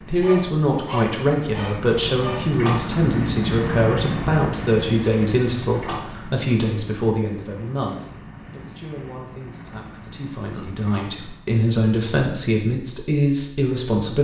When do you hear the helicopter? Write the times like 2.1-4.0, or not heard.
0.0-11.6.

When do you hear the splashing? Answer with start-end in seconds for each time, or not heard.
2.5-3.0, 5.8-6.2, 10.8-11.3.